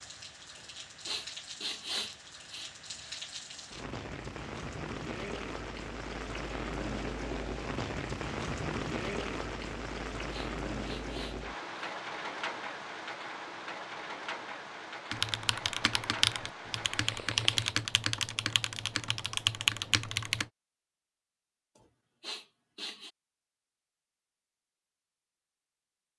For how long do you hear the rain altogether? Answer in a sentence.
You can hear the rain for 18 seconds altogether.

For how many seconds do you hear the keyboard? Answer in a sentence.
You can hear the keyboard for 5 seconds altogether.